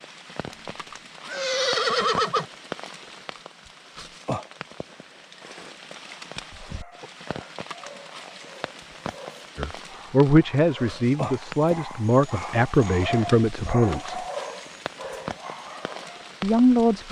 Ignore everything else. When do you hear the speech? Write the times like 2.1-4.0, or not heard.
9.6-14.2, 16.4-17.0.